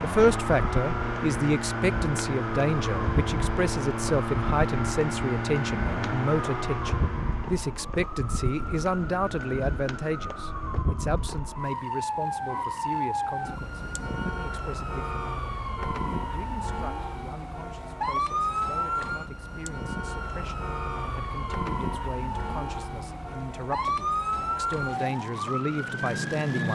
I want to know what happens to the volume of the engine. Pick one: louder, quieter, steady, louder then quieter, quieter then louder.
steady.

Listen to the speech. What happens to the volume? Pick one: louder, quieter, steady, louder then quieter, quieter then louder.
quieter then louder.